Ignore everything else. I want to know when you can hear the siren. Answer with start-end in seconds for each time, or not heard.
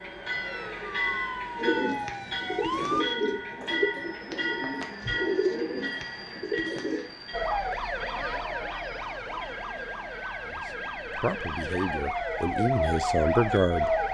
0.0-3.0, 7.3-14.0.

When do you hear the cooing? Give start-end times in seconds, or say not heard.
1.6-7.0.